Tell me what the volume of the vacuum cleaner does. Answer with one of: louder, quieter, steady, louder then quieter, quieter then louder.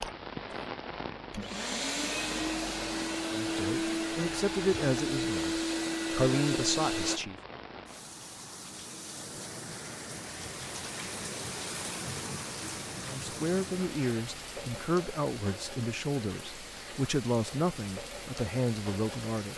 louder.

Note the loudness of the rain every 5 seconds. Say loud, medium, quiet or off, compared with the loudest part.
loud, medium, loud, loud.